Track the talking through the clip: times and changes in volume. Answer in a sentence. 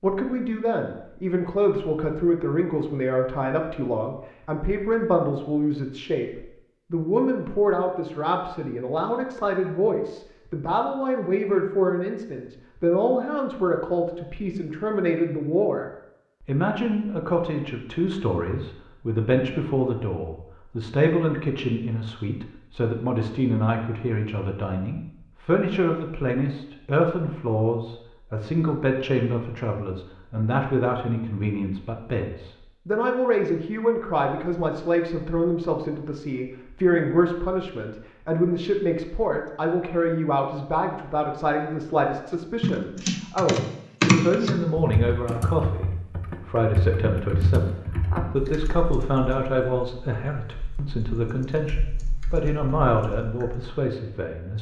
The talking can be heard from 0.0 to 15.8 s, at a steady volume; and from 16.4 to 54.5 s, at a steady volume.